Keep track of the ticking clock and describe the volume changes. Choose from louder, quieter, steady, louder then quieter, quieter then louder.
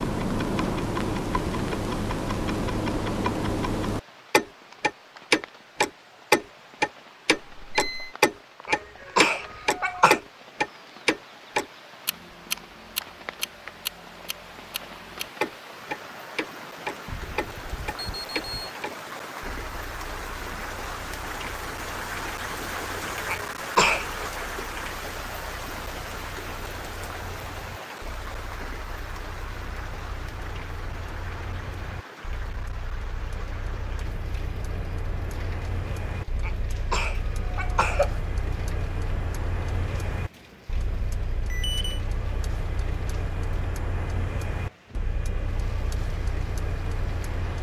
quieter then louder.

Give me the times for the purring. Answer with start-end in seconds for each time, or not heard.
not heard.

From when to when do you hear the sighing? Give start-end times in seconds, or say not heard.
not heard.